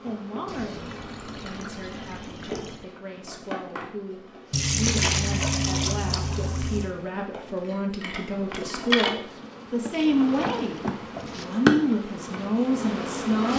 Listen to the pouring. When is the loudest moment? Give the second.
5 s.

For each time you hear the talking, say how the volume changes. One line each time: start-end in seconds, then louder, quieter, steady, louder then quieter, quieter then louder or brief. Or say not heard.
0.0-13.5 louder.